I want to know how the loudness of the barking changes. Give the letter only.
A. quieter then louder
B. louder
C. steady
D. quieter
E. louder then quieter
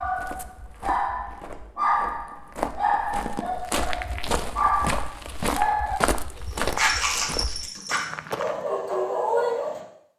C.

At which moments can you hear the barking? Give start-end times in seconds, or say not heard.
0.0-6.0, 6.7-10.1.